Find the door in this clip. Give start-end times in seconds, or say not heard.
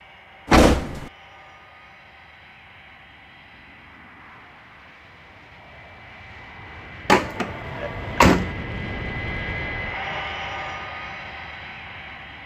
0.5-1.1, 7.0-8.5.